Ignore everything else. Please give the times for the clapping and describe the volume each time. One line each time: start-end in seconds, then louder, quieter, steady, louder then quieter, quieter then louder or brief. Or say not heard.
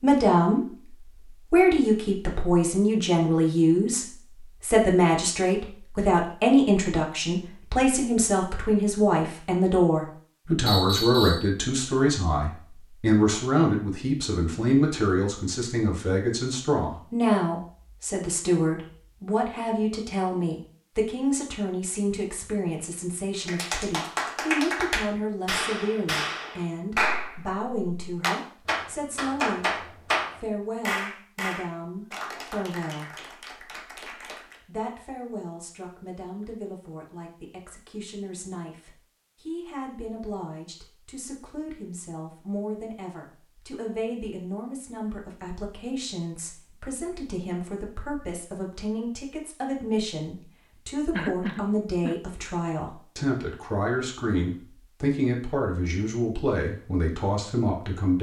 23.4-34.6 quieter.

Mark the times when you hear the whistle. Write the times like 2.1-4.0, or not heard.
10.7-11.5.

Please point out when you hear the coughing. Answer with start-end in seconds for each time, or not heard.
51.1-52.1.